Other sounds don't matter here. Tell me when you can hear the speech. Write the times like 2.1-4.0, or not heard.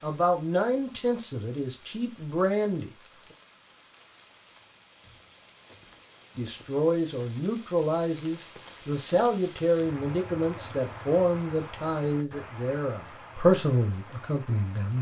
0.0-2.9, 6.3-14.9.